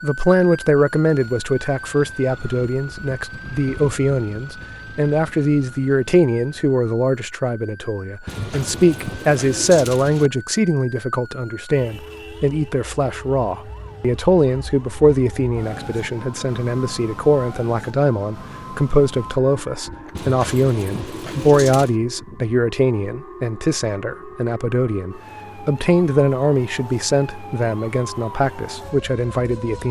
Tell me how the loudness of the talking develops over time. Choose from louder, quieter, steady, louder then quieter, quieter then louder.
steady.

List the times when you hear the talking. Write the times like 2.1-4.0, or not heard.
0.0-29.8.